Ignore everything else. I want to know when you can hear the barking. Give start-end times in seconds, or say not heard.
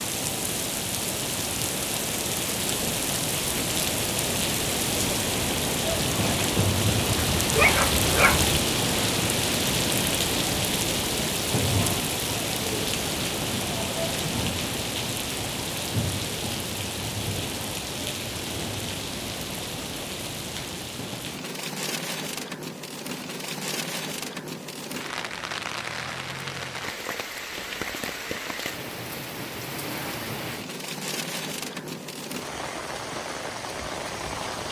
7.2-8.6.